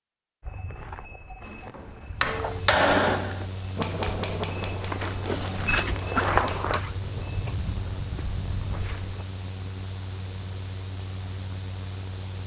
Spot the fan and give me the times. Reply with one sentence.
The fan can be heard from 2.3 to 12.4 s.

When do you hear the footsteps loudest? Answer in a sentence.
The volume of the footsteps peaks at 6 seconds.